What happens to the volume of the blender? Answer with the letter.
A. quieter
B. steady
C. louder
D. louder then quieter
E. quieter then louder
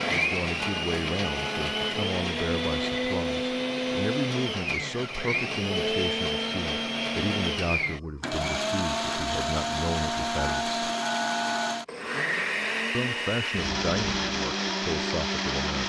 B.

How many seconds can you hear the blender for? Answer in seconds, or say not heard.
16 s.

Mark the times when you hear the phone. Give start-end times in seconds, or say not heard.
0.6-1.9, 10.3-11.8.